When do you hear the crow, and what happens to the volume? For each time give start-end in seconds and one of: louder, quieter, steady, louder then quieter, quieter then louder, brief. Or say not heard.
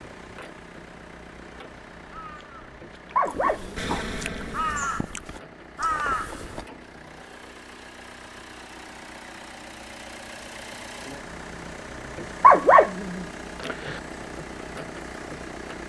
2.0-6.7 louder.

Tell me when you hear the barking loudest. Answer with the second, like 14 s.
13 s.